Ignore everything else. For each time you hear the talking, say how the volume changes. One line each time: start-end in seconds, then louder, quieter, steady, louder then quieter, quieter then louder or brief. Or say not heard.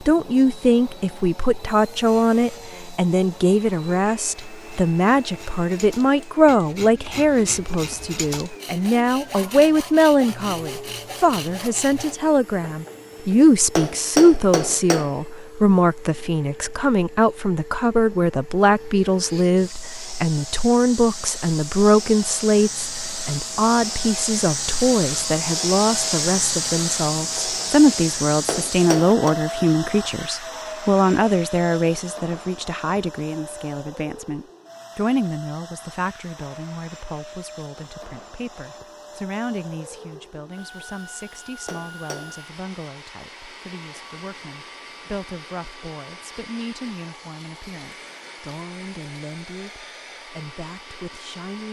0.0-51.6 quieter.